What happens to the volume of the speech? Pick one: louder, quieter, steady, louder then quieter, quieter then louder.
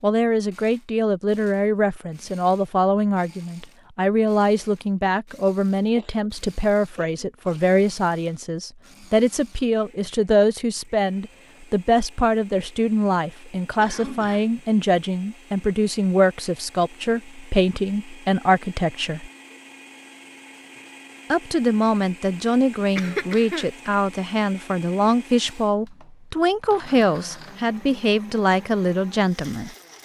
steady.